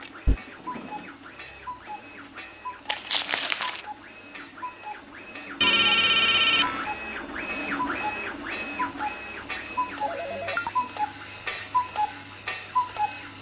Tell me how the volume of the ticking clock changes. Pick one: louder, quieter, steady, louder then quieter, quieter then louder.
louder.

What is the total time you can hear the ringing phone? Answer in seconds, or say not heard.
3 s.